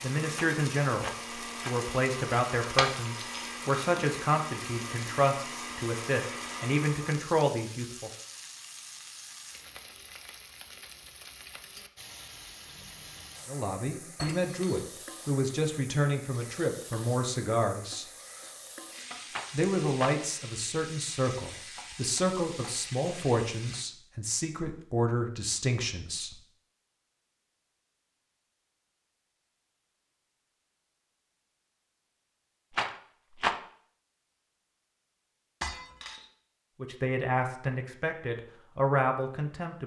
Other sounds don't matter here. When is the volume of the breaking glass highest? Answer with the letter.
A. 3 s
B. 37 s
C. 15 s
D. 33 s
A.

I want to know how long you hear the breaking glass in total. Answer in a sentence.
The breaking glass can be heard for 2 seconds in total.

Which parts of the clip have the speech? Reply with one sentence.
You can hear the speech from 0.0 to 8.1 s, from 13.4 to 18.1 s, from 19.5 to 26.4 s and from 36.8 to 39.8 s.